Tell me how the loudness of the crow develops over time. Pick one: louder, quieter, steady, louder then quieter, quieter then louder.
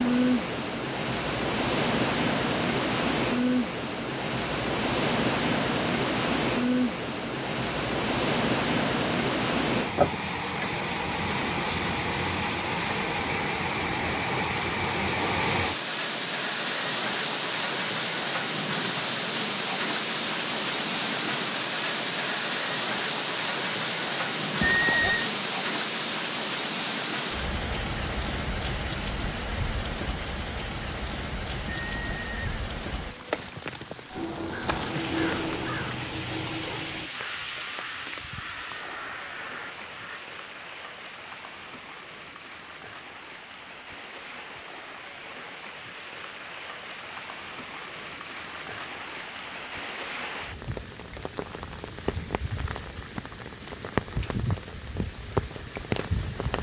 quieter.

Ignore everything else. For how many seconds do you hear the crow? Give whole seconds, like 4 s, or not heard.
6 s.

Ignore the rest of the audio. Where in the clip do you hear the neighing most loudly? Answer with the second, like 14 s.
25 s.